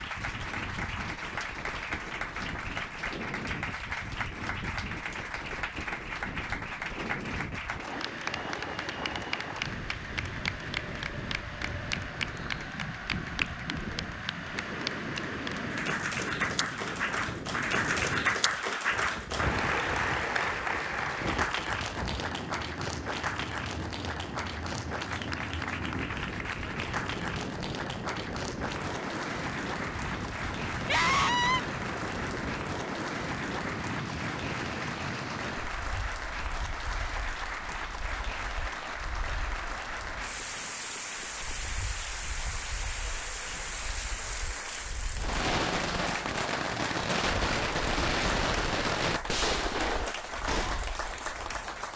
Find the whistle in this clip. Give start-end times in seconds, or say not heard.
not heard.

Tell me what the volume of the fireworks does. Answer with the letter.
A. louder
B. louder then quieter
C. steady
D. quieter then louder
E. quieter
C.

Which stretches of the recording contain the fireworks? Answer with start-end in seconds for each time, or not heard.
45.1-50.9.